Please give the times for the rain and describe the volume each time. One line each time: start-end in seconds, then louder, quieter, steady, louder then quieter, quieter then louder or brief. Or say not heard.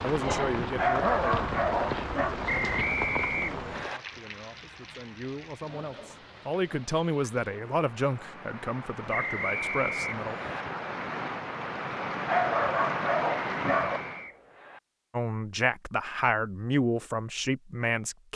0.0-14.3 quieter then louder.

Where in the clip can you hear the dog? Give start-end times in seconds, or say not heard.
0.8-2.4, 12.2-14.0.